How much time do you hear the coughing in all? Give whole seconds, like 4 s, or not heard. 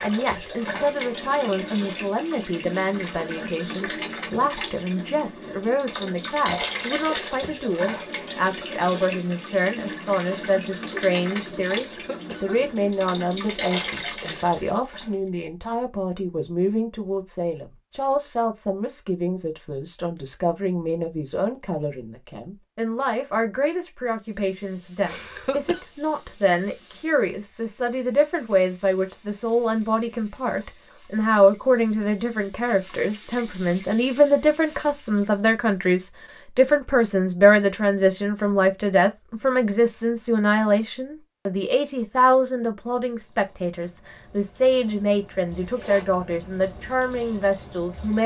2 s.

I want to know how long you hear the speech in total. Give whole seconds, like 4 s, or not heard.
48 s.